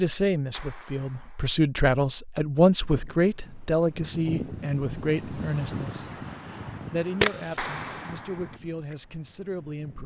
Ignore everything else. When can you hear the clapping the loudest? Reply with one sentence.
The loudest moment of the clapping is at 8 seconds.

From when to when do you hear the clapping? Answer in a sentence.
You can hear the clapping from 0.5 to 1.6 s and from 7.5 to 8.6 s.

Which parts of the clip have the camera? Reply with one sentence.
You can hear the camera from 7.2 to 8.1 s.